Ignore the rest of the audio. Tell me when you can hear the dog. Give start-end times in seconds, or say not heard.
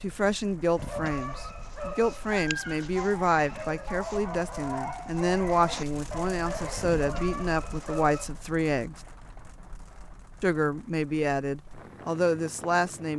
0.8-8.3.